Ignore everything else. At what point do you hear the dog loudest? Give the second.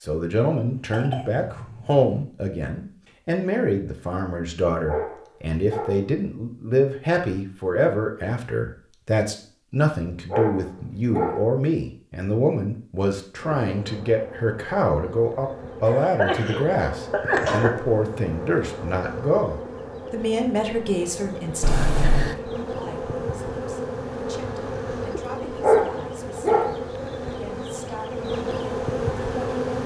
26 s.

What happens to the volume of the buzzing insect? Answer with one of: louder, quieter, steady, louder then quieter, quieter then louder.
louder.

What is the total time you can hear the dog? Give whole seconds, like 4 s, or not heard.
4 s.